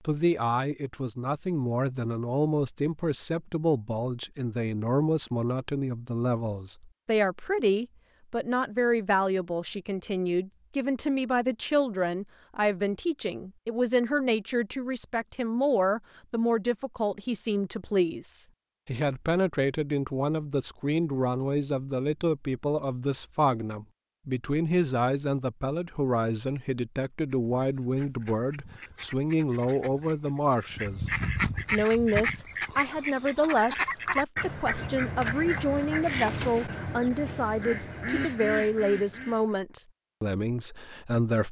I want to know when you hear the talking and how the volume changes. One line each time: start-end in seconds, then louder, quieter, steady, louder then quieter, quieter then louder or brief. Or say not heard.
0.1-41.4 steady.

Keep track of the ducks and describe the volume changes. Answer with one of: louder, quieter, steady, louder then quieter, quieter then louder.
louder.